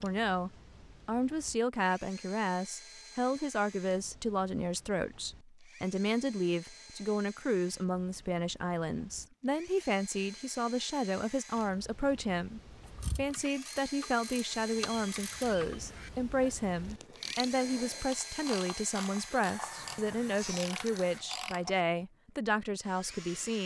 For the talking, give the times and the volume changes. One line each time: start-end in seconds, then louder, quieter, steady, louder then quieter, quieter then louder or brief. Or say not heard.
0.0-23.6 steady.